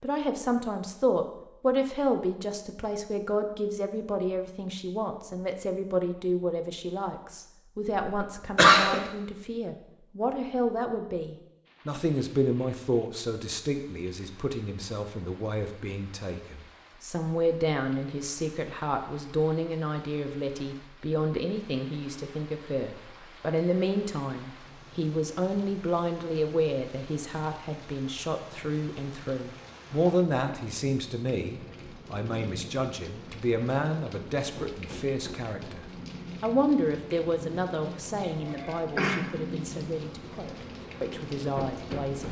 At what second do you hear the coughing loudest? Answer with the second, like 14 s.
9 s.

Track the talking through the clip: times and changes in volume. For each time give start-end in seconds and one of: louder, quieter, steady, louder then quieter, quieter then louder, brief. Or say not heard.
0.0-42.2 steady.